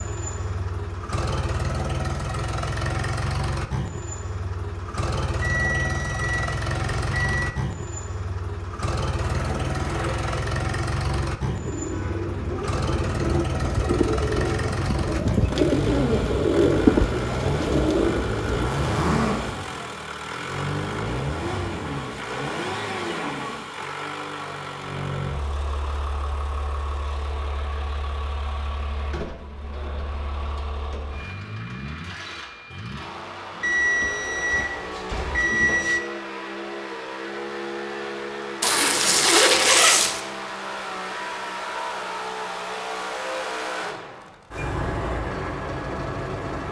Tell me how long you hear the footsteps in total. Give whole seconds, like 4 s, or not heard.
not heard.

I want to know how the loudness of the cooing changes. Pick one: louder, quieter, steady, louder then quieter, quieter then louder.
louder.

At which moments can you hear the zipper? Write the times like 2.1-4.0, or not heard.
9.2-10.4, 18.6-19.4, 38.6-40.2.